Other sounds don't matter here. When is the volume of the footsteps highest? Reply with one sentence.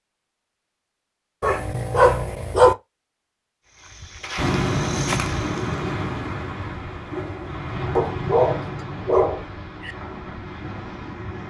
The loudest moment of the footsteps is at 5 seconds.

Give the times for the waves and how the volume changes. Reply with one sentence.
The waves can be heard from 4.3 to 11.4 s, getting quieter.